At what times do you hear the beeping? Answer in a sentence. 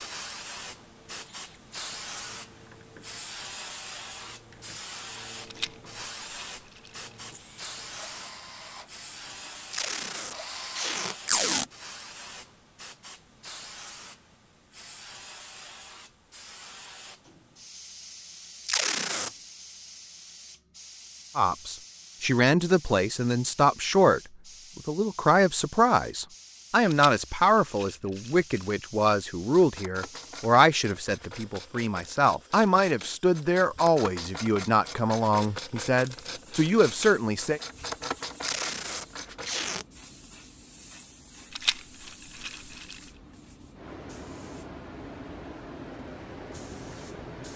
The beeping can't be heard in this clip.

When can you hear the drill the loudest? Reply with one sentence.
The loudest moment of the drill is at 11 seconds.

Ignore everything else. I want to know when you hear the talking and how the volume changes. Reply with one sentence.
The talking can be heard from 21.4 to 37.6 s, at a steady volume.